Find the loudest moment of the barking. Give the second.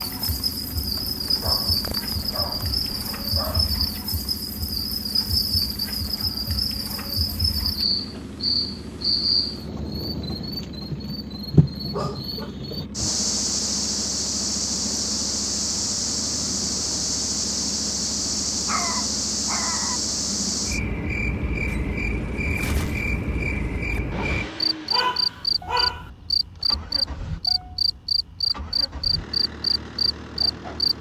25 s.